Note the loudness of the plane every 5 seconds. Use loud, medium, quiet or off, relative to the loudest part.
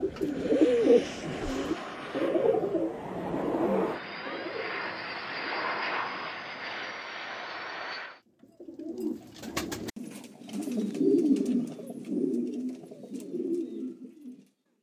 loud, loud, off.